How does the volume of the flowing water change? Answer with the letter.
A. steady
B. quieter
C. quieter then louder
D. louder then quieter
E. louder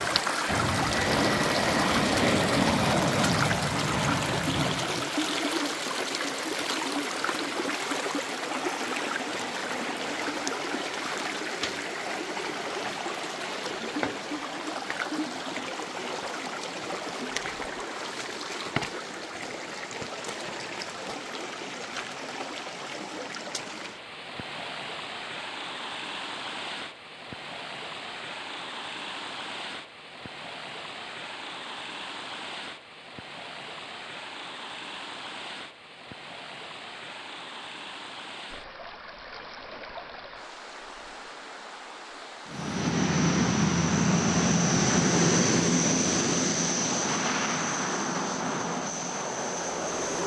B.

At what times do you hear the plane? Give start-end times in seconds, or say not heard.
0.0-5.2, 42.5-50.2.